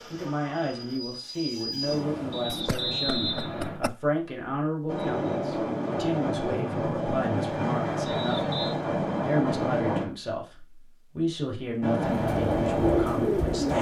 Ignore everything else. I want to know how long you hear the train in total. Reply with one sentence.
The train can be heard for 10 seconds in total.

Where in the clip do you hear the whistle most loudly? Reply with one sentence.
The loudest moment of the whistle is at 3 seconds.